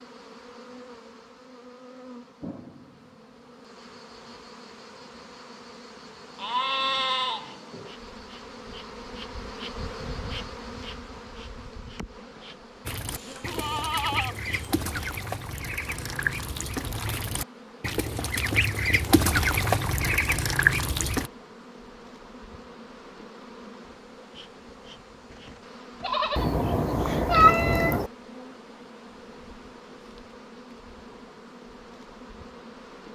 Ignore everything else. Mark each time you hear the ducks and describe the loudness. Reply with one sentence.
You can hear the ducks from 12.8 to 21.3 s, getting louder.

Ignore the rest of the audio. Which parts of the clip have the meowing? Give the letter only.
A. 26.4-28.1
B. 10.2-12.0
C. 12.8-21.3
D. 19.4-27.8
A.